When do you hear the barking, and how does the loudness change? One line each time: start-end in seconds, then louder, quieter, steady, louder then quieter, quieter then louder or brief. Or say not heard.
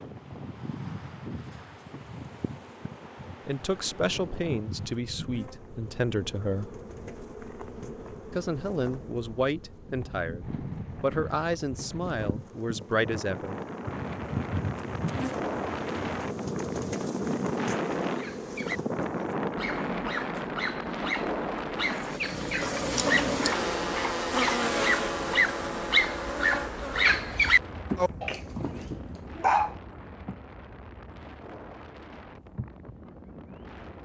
18.1-29.7 louder.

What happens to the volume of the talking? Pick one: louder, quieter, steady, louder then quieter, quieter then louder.
steady.